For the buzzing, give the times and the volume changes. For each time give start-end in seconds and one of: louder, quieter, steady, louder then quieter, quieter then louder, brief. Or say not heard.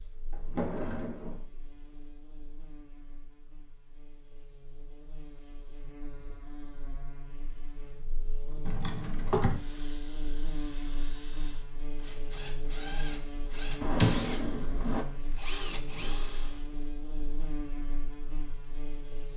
0.0-19.3 louder.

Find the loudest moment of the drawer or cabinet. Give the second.
14 s.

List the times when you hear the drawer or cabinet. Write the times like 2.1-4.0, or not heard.
0.3-1.4, 8.7-9.6, 13.8-15.1.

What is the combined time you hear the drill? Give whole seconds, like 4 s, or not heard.
7 s.